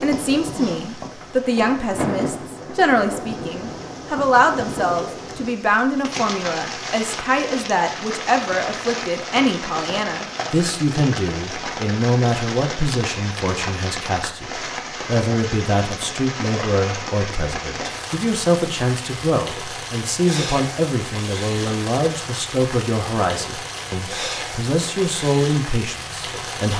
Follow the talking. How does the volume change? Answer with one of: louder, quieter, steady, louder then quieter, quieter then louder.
steady.